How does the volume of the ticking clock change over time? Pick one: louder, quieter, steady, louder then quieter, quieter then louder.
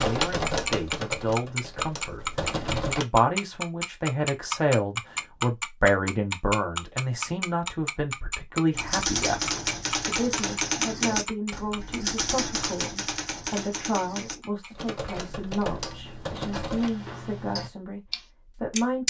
quieter then louder.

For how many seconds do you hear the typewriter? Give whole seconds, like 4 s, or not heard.
11 s.